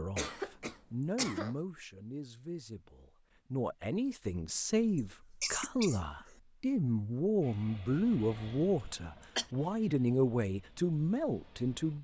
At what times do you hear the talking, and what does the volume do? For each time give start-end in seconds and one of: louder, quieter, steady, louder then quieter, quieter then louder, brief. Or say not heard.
0.0-11.9 louder.